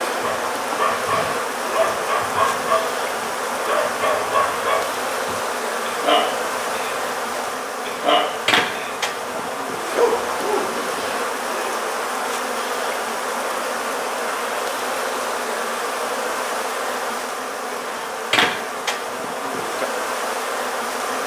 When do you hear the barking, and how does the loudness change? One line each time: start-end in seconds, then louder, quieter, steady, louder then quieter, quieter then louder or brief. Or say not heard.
0.2-2.9 brief
3.6-10.9 quieter then louder.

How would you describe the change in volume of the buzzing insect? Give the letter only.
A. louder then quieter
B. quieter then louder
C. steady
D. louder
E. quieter
C.